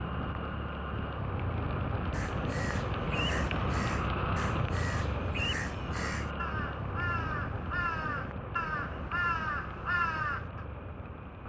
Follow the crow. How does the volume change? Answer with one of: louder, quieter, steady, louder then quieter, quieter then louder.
louder.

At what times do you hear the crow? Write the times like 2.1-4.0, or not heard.
2.1-10.6.